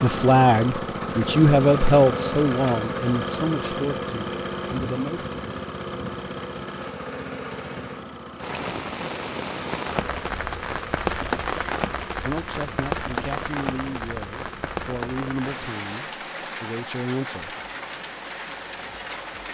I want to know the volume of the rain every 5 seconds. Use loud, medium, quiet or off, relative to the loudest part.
off, loud, loud, medium.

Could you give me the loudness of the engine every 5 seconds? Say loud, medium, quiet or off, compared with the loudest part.
loud, medium, quiet, quiet.